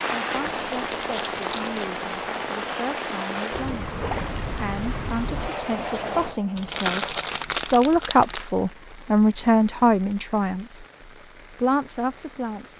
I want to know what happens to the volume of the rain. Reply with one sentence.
The volume of the rain goes down.